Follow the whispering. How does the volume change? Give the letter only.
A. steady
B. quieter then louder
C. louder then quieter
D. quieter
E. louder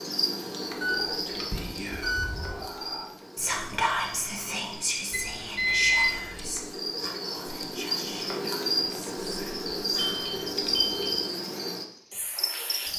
C.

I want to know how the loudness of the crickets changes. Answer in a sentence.
The volume of the crickets goes down, then up.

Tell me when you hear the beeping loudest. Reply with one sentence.
The volume of the beeping peaks at 6 seconds.